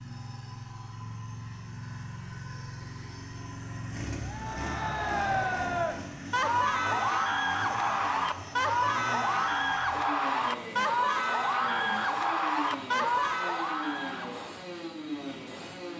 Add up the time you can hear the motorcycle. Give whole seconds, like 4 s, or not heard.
16 s.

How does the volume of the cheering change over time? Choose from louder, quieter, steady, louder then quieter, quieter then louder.
steady.